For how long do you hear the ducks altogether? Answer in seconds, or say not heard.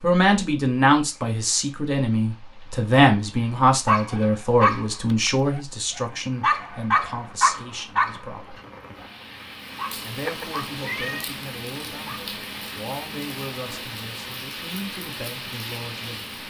not heard.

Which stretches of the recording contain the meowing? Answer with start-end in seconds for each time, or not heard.
10.2-11.2.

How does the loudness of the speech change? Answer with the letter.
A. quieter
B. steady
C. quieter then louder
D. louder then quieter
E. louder
A.